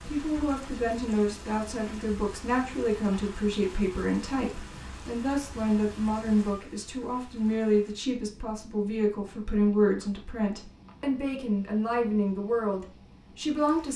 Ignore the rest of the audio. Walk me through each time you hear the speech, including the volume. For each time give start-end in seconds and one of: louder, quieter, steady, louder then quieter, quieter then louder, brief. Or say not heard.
0.1-13.9 steady.